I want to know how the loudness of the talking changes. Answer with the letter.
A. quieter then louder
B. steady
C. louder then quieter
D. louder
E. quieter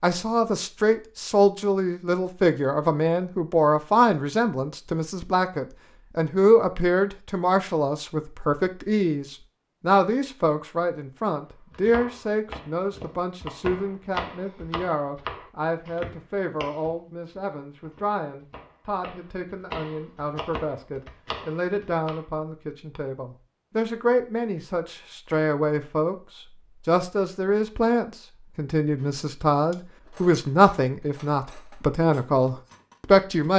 A.